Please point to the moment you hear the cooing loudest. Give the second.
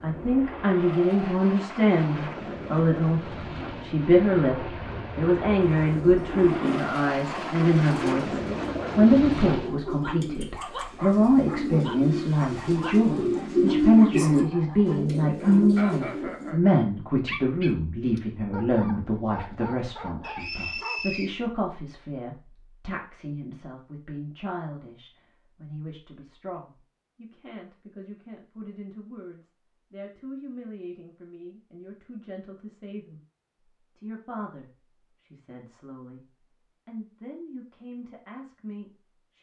14 s.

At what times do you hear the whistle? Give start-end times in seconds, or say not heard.
20.2-21.3.